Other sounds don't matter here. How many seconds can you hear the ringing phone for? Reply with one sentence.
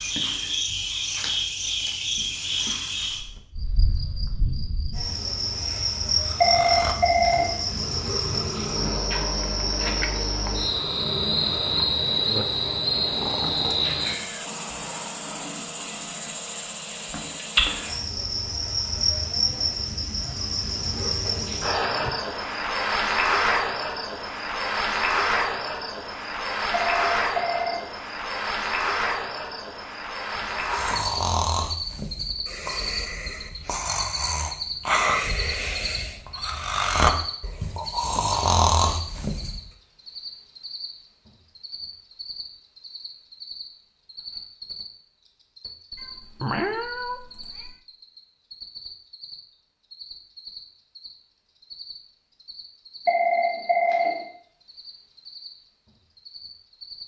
The ringing phone can be heard for 3 seconds in total.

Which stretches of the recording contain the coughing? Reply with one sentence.
You can't hear the coughing here.